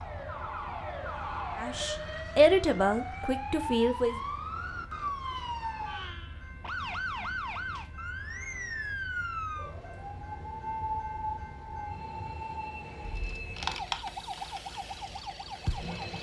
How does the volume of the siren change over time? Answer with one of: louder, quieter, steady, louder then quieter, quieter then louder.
steady.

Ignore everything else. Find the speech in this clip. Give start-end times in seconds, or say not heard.
1.6-4.2.